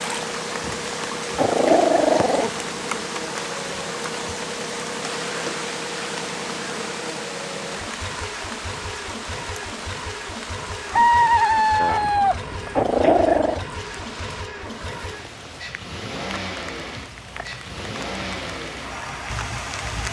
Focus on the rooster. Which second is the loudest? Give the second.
11 s.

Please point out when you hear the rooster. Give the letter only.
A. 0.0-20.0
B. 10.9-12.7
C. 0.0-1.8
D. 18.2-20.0
B.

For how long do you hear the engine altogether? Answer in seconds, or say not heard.
20 s.